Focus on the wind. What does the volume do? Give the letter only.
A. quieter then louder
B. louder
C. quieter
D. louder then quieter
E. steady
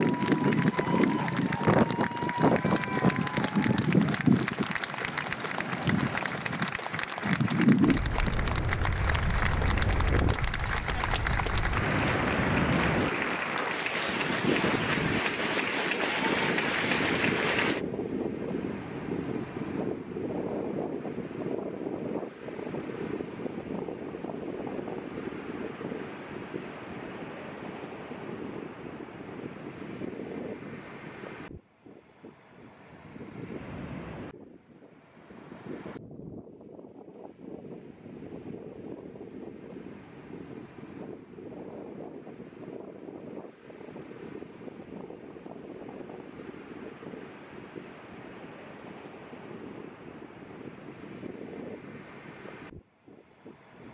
C.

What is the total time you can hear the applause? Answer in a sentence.
The applause can be heard for 18 seconds in total.